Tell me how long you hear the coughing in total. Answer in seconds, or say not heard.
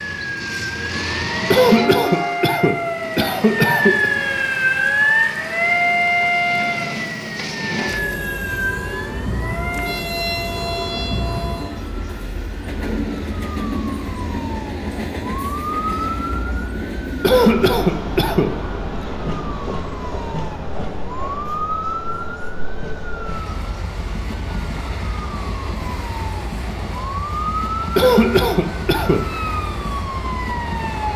5 s.